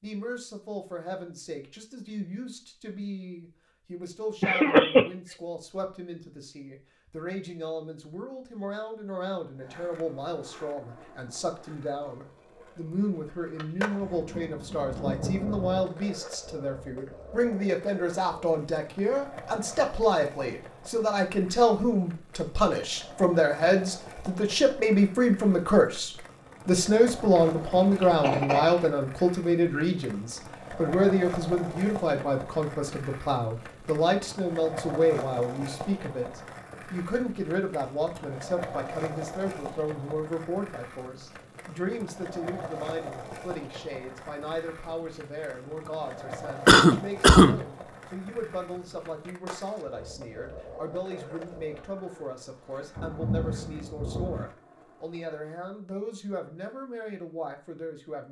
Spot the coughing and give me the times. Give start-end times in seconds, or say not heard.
4.4-5.1, 27.4-28.9, 46.6-47.6.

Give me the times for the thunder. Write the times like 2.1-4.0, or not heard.
14.0-15.8, 53.0-54.5.